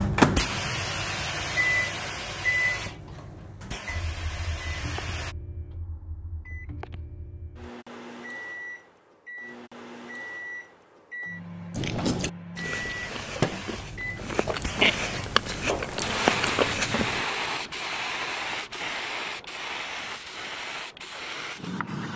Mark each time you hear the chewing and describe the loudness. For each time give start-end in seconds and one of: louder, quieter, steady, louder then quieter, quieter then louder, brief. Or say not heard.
11.7-17.2 quieter then louder.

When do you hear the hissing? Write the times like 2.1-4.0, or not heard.
0.0-5.3, 12.7-22.1.